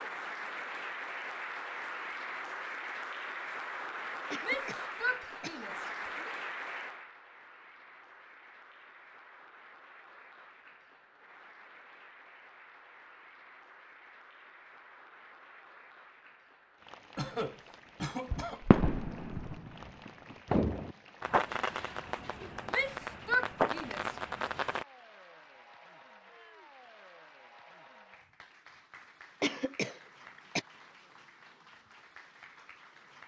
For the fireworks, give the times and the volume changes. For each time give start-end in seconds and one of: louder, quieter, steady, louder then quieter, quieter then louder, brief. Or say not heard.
18.3-24.9 quieter then louder.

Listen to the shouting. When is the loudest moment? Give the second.
23 s.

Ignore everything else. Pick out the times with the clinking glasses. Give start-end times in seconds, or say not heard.
not heard.